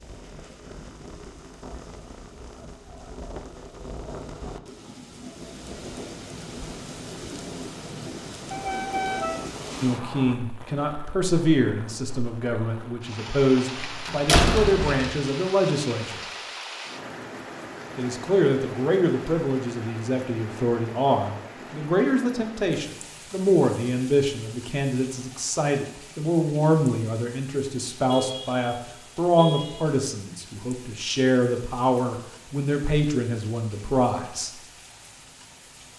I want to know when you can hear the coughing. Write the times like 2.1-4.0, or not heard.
not heard.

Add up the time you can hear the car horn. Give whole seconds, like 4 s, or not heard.
4 s.